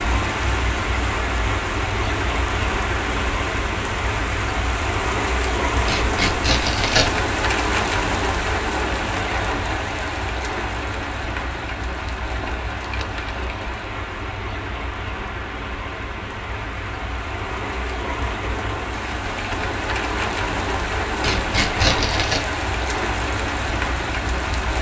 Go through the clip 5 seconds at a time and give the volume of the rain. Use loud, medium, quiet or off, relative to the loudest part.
loud, loud, medium, medium, loud.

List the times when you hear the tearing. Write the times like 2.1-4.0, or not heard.
5.8-7.2, 21.2-22.4.